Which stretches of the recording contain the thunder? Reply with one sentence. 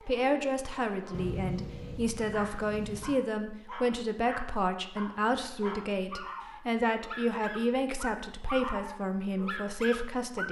You can hear the thunder from 1.1 to 3.1 s.